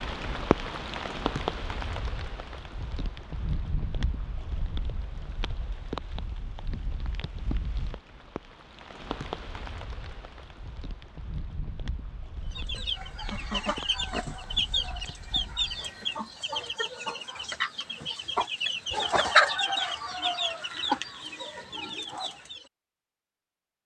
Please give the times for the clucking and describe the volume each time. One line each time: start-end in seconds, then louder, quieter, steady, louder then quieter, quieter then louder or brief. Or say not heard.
12.5-22.6 louder then quieter.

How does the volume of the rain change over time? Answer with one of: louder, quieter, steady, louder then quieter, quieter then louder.
quieter.